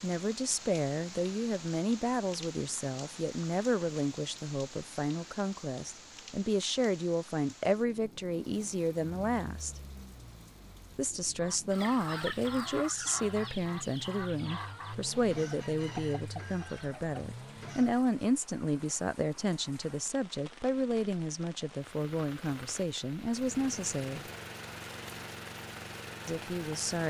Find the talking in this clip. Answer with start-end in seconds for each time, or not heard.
0.0-9.8, 10.9-24.2, 26.2-27.0.